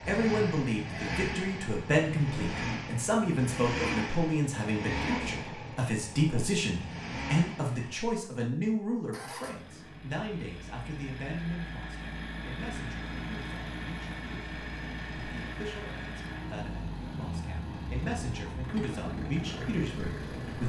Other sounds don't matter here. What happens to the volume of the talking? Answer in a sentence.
The loudness of the talking goes down, then up.